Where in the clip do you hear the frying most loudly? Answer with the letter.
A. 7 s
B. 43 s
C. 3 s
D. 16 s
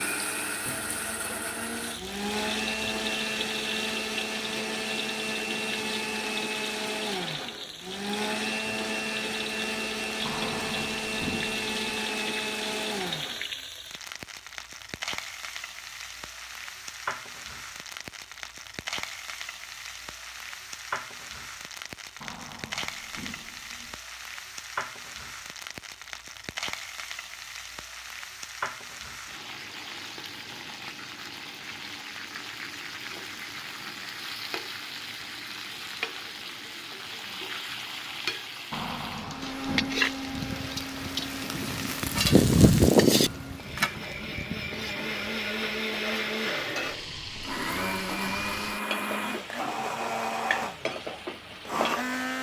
B.